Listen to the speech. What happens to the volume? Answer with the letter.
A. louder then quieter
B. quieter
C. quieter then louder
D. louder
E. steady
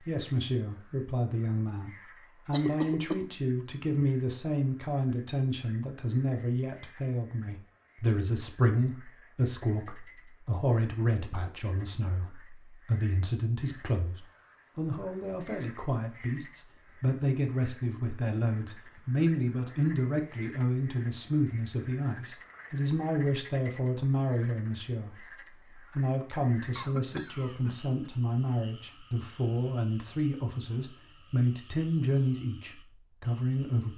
E.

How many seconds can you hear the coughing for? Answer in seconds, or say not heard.
2 s.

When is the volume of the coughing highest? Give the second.
3 s.